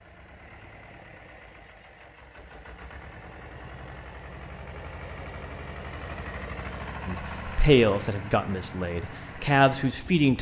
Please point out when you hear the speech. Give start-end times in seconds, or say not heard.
7.0-10.3.